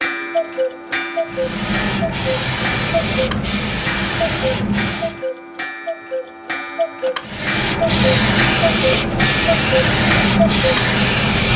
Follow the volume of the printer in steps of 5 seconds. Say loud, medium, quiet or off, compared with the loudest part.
medium, loud, loud.